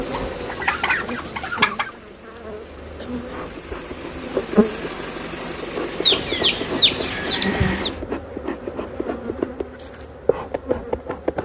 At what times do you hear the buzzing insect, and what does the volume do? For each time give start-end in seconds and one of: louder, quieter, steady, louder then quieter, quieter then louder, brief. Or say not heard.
0.0-11.3 louder.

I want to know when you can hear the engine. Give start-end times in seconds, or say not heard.
0.0-8.1.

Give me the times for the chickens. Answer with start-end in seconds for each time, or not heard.
0.1-1.9, 6.0-7.9.